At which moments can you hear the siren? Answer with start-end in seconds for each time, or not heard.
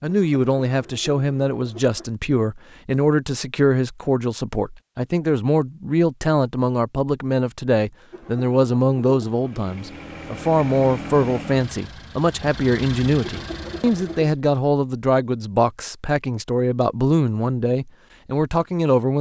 not heard.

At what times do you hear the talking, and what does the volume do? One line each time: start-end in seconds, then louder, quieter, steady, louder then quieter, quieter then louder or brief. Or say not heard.
0.0-19.1 steady.